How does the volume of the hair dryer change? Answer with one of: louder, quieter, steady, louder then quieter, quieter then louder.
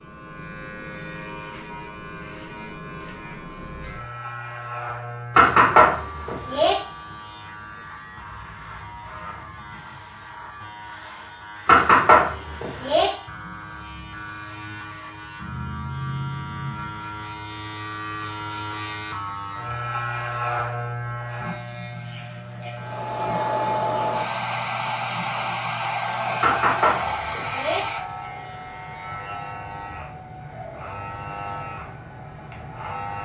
quieter.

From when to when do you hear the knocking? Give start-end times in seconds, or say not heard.
5.3-6.8, 11.7-13.1, 26.4-27.8.